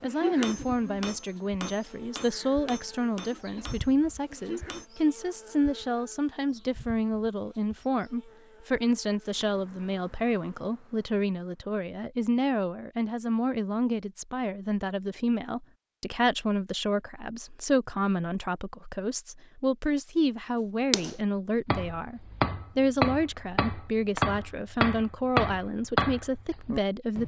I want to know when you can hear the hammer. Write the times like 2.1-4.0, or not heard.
0.0-4.8, 20.9-27.2.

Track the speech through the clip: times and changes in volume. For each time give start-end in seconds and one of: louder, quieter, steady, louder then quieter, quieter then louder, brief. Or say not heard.
0.0-27.2 steady.